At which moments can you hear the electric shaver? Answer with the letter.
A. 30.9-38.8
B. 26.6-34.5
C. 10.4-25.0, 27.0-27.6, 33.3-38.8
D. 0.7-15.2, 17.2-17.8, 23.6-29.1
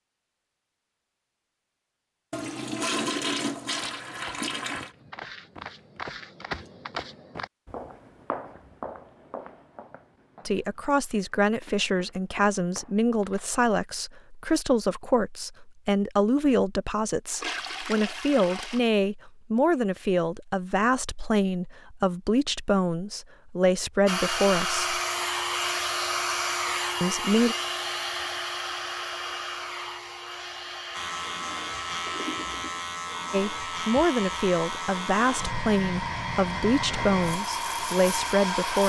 A.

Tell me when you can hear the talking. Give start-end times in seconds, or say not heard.
10.4-25.0, 27.0-27.6, 33.3-38.8.